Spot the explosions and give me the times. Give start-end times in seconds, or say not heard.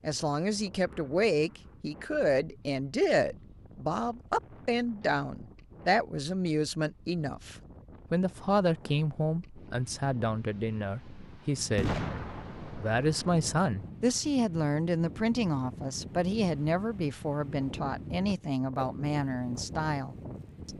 11.8-13.9.